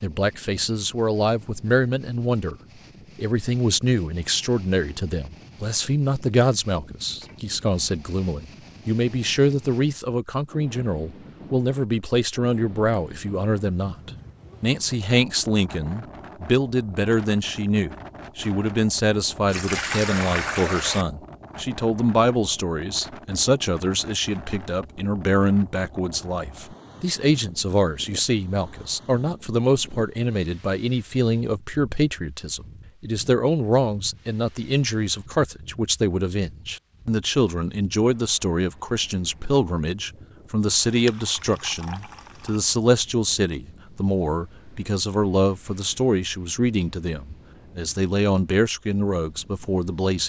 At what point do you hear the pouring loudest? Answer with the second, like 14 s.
20 s.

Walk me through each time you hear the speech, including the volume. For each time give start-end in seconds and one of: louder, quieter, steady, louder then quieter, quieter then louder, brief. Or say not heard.
0.0-2.5 brief
3.1-50.2 steady.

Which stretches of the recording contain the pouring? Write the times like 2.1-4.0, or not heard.
19.4-21.1, 40.8-42.6.